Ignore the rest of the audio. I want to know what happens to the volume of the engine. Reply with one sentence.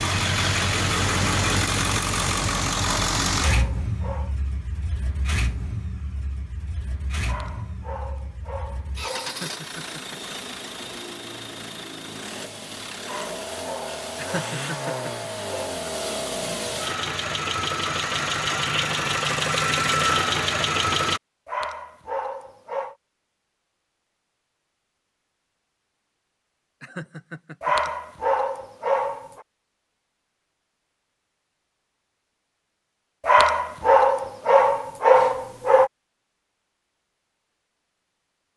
The volume of the engine goes down, then up.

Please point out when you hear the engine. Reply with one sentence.
The engine can be heard from 0.0 to 21.2 s.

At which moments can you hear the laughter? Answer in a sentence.
The laughter can be heard from 9.2 to 10.3 s, from 14.2 to 15.3 s and from 26.8 to 27.9 s.